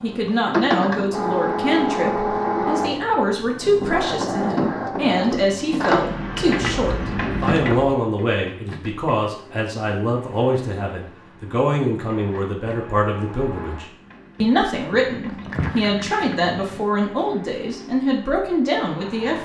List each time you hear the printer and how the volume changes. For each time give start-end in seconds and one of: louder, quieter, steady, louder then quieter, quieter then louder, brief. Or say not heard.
0.0-19.4 quieter.